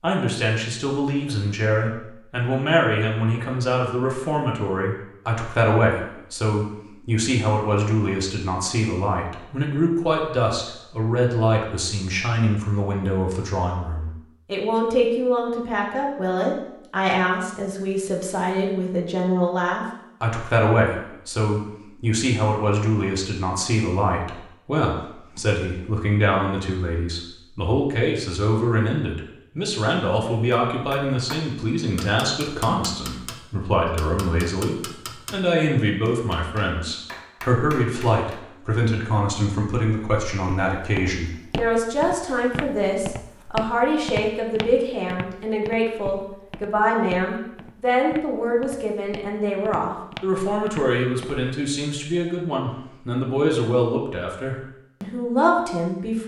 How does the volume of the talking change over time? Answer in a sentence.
The volume of the talking stays about the same.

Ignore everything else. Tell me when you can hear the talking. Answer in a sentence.
The talking can be heard from 0.0 to 56.2 s.